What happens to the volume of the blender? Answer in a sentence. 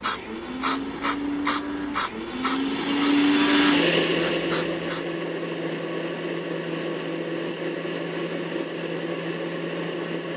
The loudness of the blender goes up, then down.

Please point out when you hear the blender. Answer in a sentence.
The blender can be heard from 0.0 to 10.3 s.